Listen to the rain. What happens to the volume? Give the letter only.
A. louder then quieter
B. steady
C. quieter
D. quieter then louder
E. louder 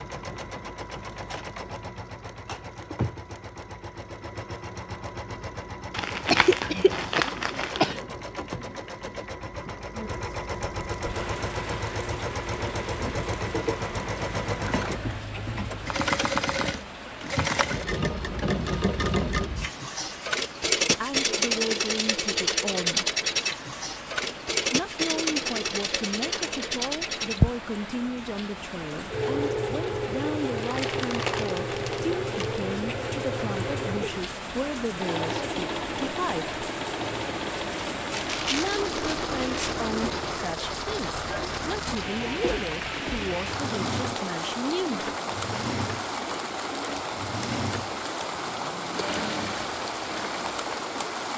E.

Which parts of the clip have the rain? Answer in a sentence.
The rain can be heard from 10.9 to 51.3 s.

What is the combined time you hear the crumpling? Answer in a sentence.
The crumpling can be heard for 6 seconds in total.